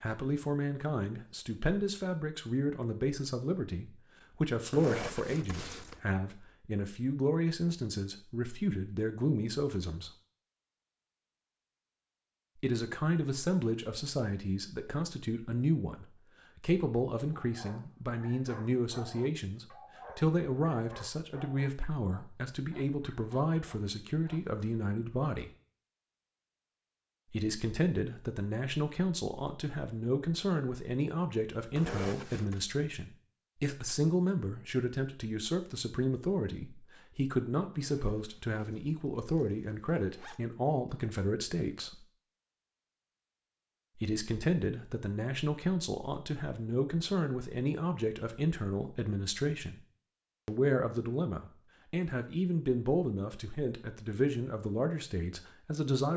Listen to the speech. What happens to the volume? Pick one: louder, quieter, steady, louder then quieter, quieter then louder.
steady.